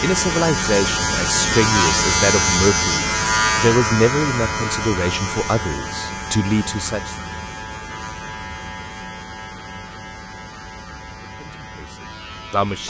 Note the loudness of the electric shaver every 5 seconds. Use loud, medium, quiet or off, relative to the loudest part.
loud, medium, quiet.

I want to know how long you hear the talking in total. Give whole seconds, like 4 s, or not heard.
9 s.